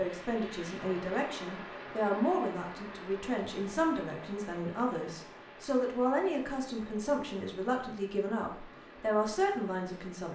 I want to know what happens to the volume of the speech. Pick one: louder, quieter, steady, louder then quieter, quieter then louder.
steady.